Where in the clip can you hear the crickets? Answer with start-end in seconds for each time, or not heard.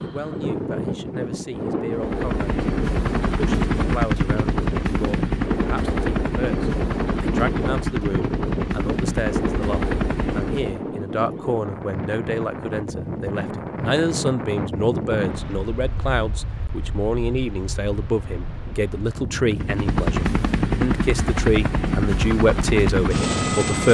not heard.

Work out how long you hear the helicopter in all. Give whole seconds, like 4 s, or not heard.
13 s.